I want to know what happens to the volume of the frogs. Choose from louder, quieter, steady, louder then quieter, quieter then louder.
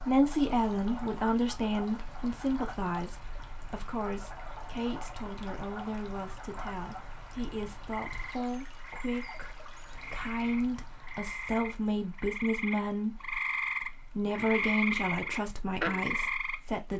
louder.